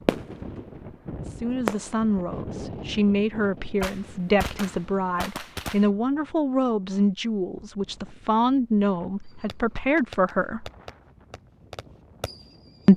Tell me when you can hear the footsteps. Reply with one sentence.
The footsteps can't be heard in this clip.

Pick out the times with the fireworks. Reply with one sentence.
The fireworks can be heard from 0.1 to 2.1 s, from 3.8 to 5.8 s and from 9.2 to 12.8 s.